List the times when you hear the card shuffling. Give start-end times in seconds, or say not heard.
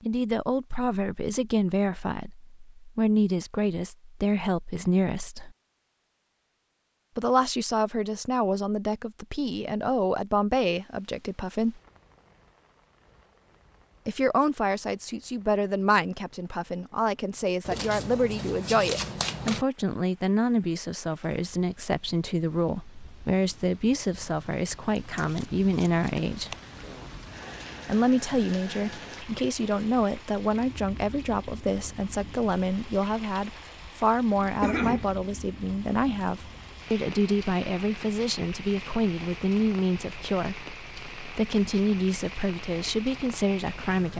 17.6-19.6, 24.9-26.8.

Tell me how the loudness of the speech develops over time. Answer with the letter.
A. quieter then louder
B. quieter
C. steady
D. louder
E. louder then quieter
C.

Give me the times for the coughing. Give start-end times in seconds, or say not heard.
34.6-35.0.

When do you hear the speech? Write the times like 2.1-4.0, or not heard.
0.0-5.5, 7.2-11.8, 14.1-26.6, 27.9-44.1.